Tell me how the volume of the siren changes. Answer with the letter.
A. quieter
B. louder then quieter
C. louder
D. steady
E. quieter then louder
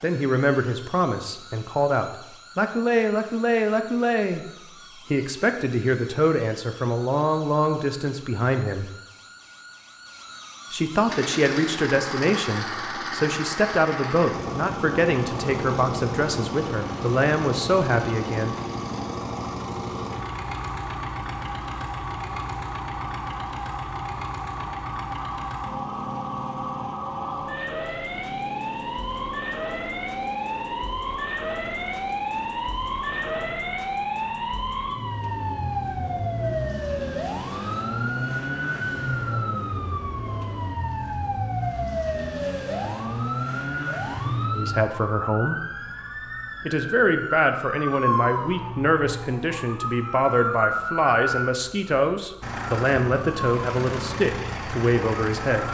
C.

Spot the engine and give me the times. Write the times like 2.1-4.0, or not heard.
11.1-40.7, 52.4-55.7.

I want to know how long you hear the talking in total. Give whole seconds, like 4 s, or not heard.
26 s.